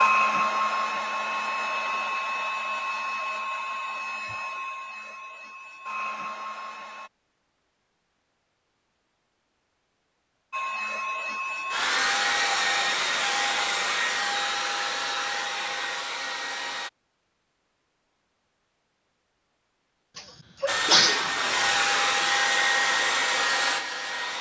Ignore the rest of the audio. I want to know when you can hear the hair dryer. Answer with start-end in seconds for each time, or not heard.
0.0-7.1, 10.5-16.9, 20.6-24.3.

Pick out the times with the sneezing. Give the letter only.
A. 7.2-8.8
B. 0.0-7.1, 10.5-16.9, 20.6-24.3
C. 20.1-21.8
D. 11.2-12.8
C.